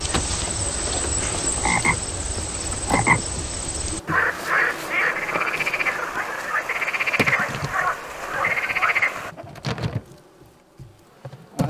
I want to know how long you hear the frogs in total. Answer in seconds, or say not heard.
9 s.